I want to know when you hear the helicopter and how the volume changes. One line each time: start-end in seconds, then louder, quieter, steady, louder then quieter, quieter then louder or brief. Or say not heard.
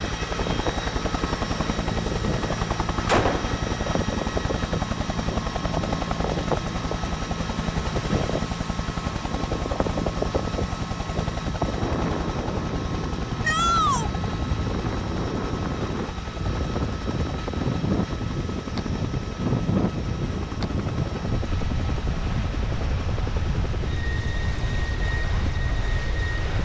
0.0-26.6 quieter.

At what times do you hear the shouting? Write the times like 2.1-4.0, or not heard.
13.4-14.1.